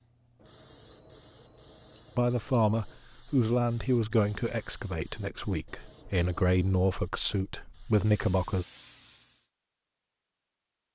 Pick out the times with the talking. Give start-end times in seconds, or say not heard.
2.1-8.7.